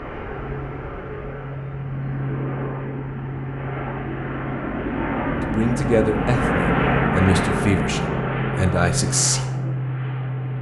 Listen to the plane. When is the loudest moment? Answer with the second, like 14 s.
7 s.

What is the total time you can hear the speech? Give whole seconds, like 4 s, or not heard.
4 s.